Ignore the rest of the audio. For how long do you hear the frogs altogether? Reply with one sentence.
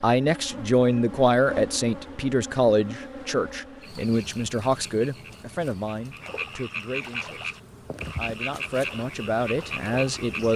The frogs can be heard for 7 seconds in total.